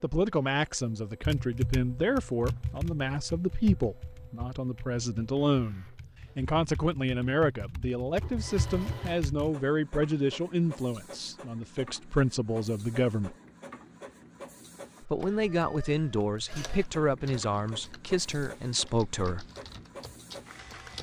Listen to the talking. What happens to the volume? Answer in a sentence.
The volume of the talking stays about the same.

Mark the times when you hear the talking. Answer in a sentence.
The talking can be heard from 0.0 to 13.3 s and from 15.0 to 19.4 s.